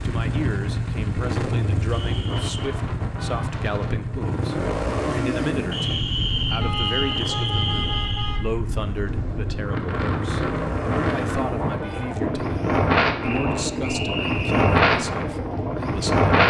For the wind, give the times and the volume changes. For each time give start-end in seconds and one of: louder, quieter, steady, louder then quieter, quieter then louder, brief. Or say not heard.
0.0-16.4 louder.